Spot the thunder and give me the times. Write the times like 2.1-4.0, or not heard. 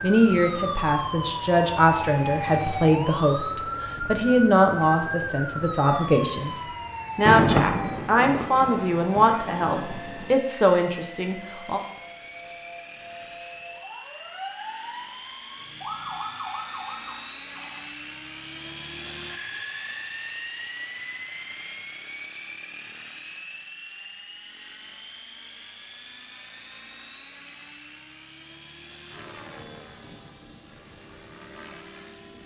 7.2-10.3.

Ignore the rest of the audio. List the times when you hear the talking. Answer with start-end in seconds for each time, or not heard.
0.0-11.8.